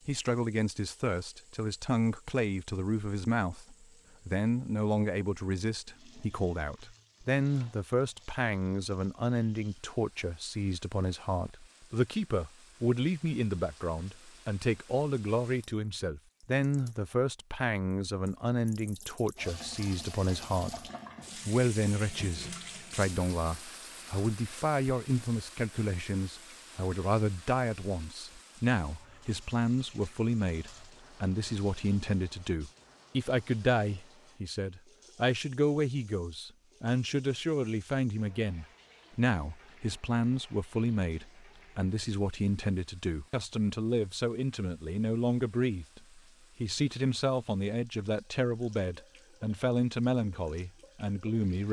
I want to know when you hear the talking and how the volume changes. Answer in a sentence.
You can hear the talking from 0.1 to 51.6 s, at a steady volume.